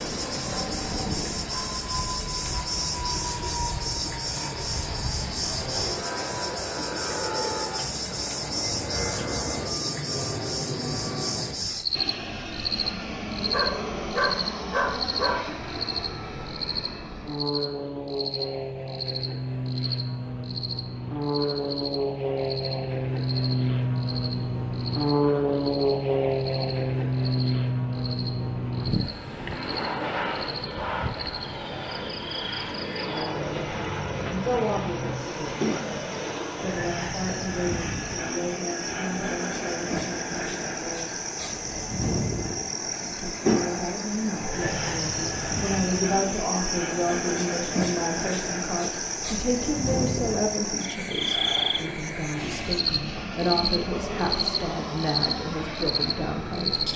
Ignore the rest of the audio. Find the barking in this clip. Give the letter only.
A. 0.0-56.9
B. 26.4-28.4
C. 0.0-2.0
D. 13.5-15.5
D.